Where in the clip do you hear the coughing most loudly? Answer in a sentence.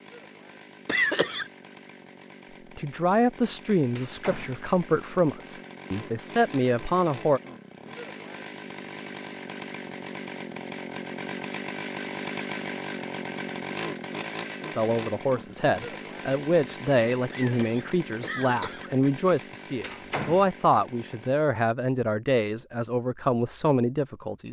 The volume of the coughing peaks at 1 second.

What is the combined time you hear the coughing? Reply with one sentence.
The coughing can be heard for 2 seconds in total.